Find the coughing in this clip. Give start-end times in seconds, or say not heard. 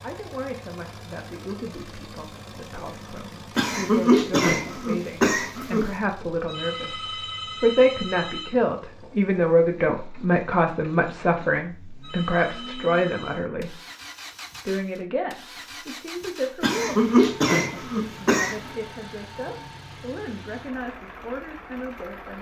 3.5-6.0, 16.6-18.6.